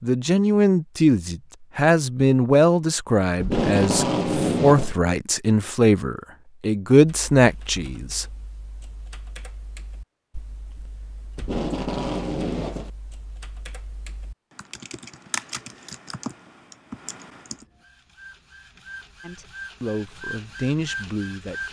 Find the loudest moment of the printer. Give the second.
21 s.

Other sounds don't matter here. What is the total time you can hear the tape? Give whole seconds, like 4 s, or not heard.
3 s.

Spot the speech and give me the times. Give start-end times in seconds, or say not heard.
0.0-8.2, 19.2-21.6.